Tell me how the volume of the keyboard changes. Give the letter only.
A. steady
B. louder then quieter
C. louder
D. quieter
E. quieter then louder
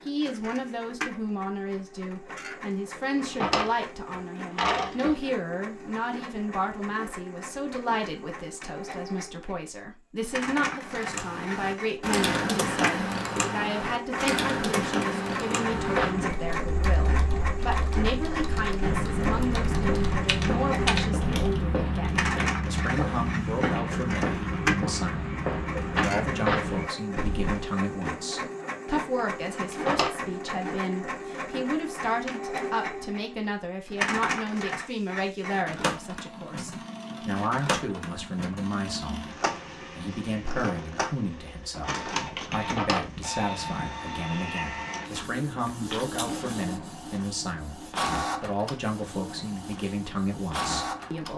E.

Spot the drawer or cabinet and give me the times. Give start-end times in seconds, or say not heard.
3.0-5.2, 29.5-30.1, 42.5-43.1.